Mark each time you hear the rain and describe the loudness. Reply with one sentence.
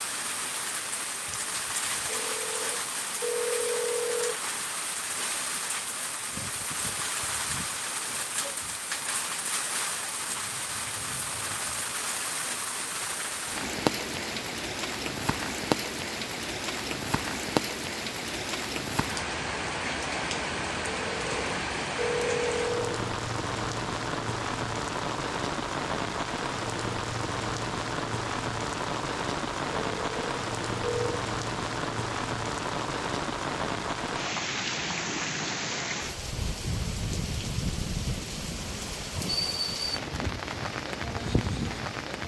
You can hear the rain from 0.0 to 42.2 s, at a steady volume.